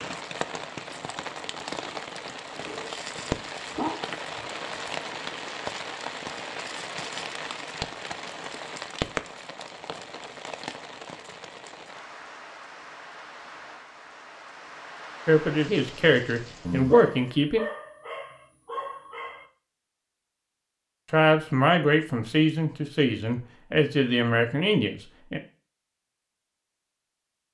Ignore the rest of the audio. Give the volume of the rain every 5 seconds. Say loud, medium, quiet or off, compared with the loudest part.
loud, loud, medium, medium, off, off.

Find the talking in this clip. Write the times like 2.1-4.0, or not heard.
15.2-17.6, 21.1-25.4.